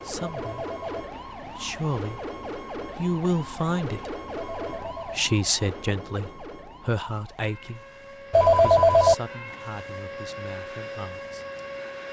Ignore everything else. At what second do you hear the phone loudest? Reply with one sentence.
The loudest moment of the phone is at 9 seconds.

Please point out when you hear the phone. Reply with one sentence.
You can hear the phone from 0.2 to 1.1 s, from 4.3 to 5.2 s and from 8.3 to 9.2 s.